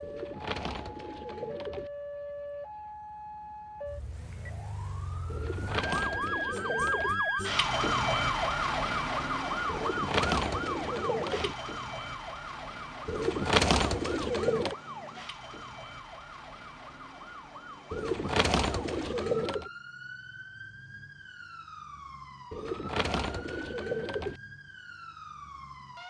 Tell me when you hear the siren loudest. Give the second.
8 s.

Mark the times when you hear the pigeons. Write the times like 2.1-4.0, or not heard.
0.0-1.9, 5.3-7.2, 9.7-11.6, 13.1-14.8, 17.9-19.7, 22.5-24.4.